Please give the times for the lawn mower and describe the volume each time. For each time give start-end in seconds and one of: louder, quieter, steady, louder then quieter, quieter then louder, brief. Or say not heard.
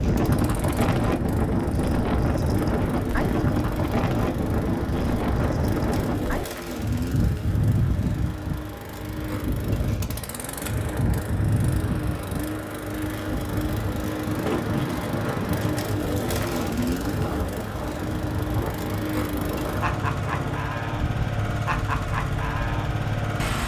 0.0-23.6 louder.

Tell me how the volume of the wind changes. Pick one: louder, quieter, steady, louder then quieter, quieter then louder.
quieter.